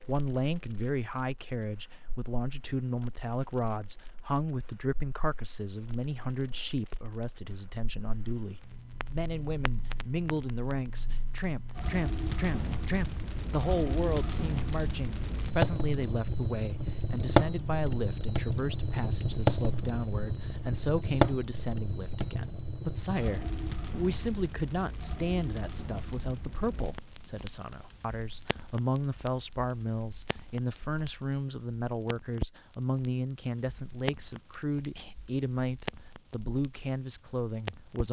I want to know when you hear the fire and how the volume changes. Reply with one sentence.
The fire can be heard from 0.0 to 38.0 s, getting louder then quieter.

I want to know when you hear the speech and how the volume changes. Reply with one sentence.
The speech can be heard from 0.1 to 38.0 s, at a steady volume.